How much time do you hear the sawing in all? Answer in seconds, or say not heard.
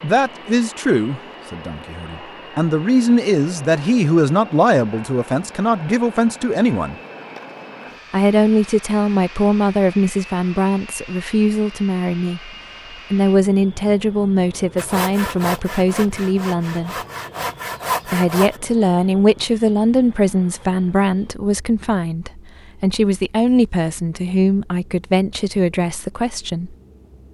4 s.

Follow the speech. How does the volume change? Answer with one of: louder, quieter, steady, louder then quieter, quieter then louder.
steady.